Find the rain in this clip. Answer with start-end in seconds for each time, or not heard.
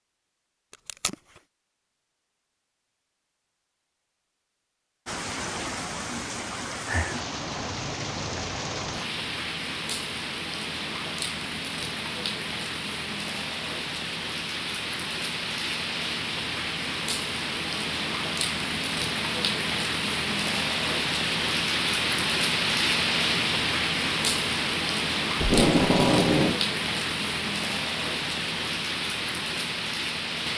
5.0-30.5.